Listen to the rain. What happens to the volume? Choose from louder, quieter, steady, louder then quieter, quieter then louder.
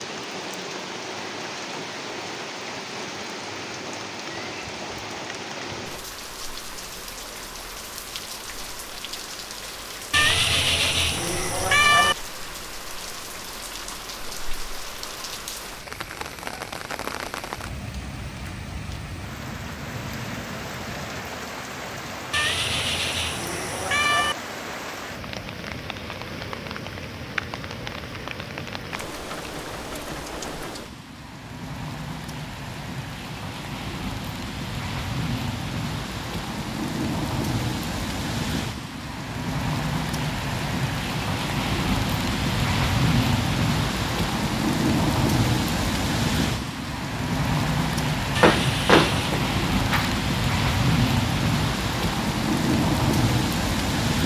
louder.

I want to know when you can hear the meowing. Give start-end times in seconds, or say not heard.
10.1-12.2, 22.3-24.4, 48.4-49.4.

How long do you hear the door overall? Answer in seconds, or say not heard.
2 s.